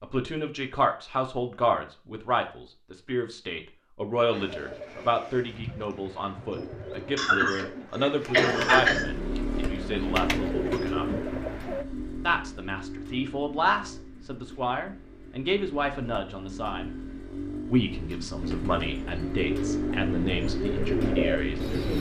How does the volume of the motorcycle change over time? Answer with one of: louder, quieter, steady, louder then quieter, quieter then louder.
quieter then louder.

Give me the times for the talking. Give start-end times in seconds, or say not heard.
0.0-11.1, 12.2-16.9, 17.6-21.9.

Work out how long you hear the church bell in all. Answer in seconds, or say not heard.
not heard.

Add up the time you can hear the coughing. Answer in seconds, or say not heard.
2 s.